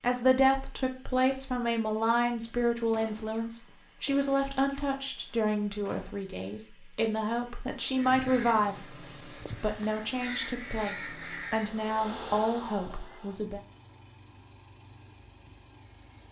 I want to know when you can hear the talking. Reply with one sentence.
The talking can be heard from 0.0 to 8.8 s and from 9.6 to 13.6 s.